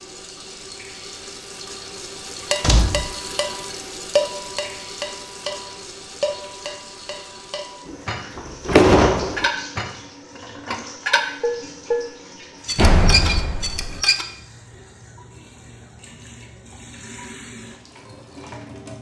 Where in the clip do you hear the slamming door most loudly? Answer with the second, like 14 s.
9 s.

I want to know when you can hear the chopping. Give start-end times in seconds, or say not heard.
not heard.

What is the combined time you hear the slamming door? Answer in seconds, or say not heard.
3 s.